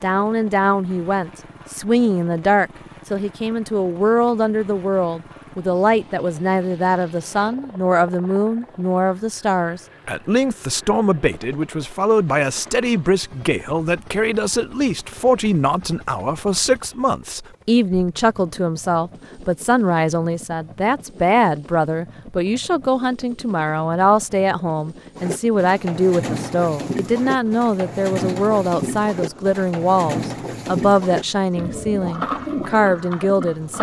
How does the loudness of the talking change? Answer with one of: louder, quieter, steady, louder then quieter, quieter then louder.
steady.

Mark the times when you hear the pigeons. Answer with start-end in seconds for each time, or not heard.
25.1-33.7.